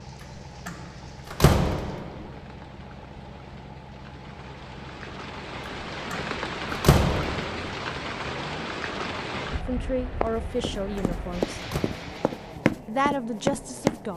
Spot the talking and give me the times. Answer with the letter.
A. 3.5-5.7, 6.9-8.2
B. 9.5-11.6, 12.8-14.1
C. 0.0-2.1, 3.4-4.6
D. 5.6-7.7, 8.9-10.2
B.